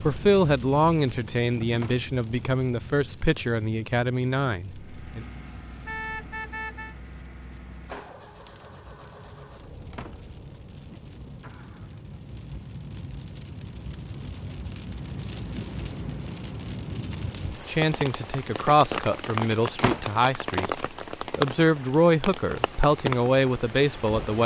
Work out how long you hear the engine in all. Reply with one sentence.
The engine can be heard for 7 seconds in total.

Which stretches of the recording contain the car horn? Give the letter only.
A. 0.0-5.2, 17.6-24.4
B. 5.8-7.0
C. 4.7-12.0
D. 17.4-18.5
B.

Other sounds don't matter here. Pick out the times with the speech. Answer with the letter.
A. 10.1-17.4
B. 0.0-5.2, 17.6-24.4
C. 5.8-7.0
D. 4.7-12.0
B.